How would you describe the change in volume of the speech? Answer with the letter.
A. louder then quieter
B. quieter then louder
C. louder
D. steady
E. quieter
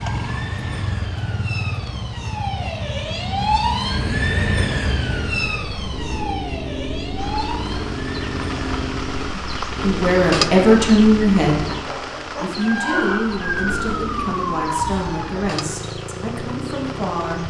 E.